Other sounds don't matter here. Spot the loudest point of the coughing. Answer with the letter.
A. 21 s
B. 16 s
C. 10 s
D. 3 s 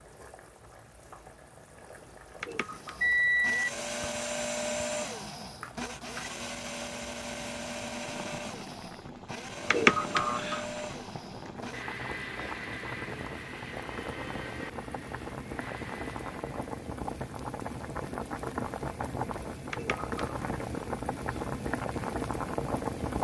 C.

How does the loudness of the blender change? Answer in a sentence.
The volume of the blender goes down.